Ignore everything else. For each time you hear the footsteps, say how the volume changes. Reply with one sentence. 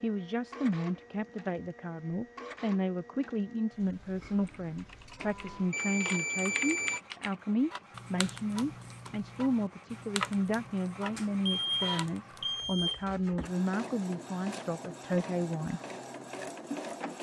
The footsteps can't be heard in this clip.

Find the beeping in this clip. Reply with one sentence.
The beeping can be heard from 5.7 to 7.0 s and from 11.2 to 13.1 s.